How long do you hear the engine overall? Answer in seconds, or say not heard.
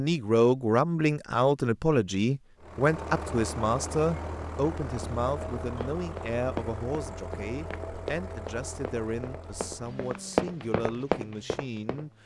10 s.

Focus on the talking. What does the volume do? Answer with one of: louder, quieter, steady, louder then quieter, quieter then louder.
quieter.